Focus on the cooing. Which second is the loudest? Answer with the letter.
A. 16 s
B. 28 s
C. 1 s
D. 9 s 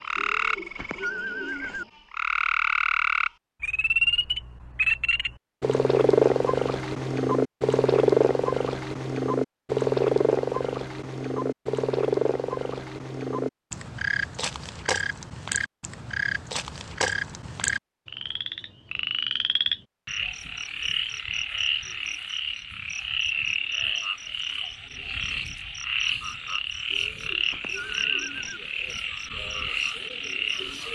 C.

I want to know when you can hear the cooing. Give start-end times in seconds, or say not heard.
0.1-1.9, 26.9-28.6.